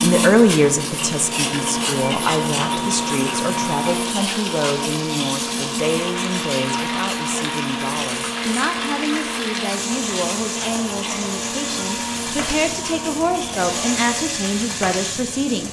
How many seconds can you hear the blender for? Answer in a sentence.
You can hear the blender for 14 seconds altogether.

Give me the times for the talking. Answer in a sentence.
The talking can be heard from 0.0 to 15.6 s.